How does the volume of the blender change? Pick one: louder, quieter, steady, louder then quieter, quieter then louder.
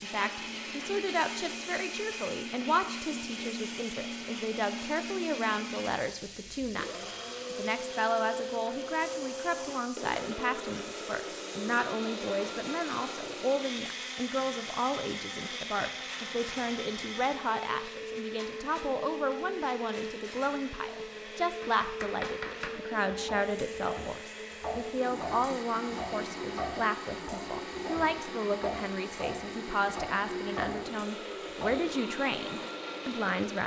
steady.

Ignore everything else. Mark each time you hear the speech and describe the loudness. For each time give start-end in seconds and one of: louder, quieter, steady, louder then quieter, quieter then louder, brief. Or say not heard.
0.0-33.6 steady.